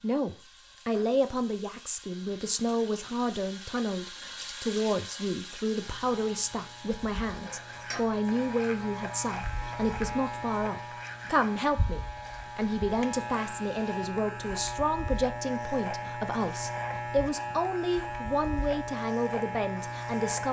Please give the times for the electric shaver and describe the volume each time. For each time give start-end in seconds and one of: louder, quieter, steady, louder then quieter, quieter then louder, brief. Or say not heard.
5.7-20.4 louder.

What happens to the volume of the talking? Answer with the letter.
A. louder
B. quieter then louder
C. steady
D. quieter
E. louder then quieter
C.